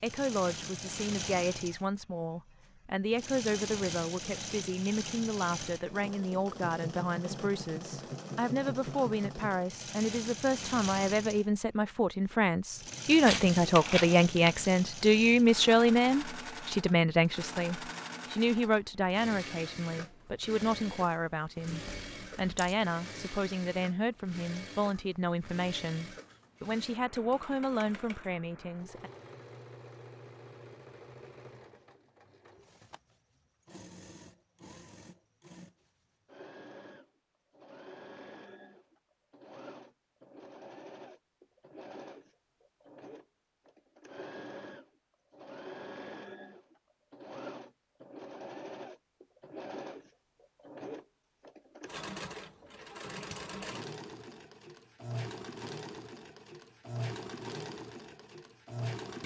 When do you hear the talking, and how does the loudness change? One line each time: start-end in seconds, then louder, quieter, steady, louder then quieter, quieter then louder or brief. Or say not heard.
0.0-29.1 louder then quieter.